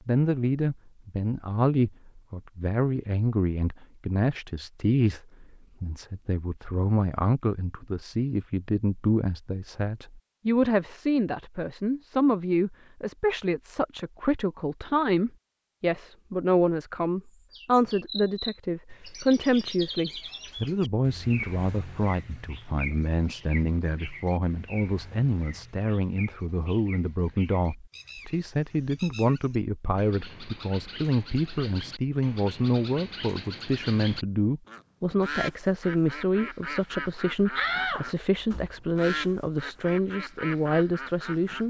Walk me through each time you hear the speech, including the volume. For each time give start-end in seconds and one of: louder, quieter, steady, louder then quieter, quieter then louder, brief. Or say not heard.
0.1-41.6 steady.